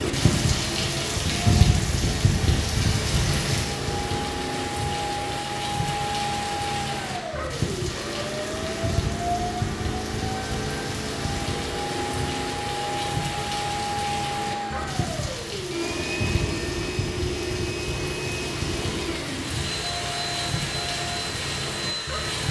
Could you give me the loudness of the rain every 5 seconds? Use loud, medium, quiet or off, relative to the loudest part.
loud, medium, medium, medium, medium.